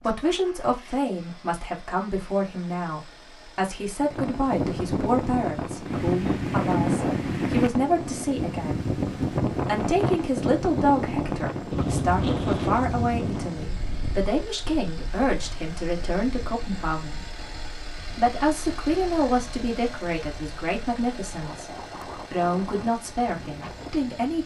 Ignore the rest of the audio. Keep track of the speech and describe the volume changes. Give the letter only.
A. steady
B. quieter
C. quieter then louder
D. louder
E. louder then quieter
A.